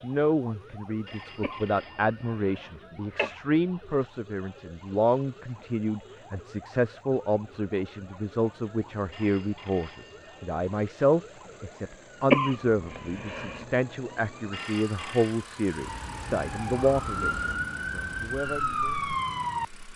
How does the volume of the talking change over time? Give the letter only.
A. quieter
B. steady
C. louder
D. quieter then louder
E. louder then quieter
B.